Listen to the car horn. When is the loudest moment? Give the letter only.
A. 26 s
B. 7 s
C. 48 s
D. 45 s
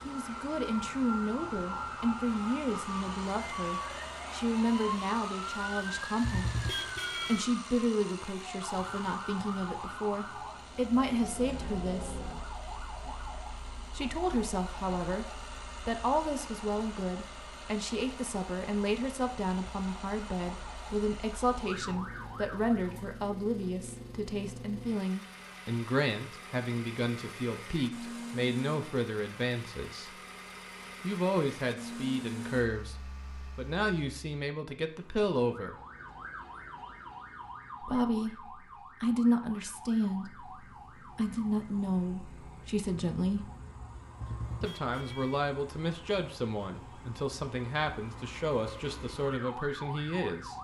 B.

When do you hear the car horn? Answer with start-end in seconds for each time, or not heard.
6.2-7.5, 44.1-45.4.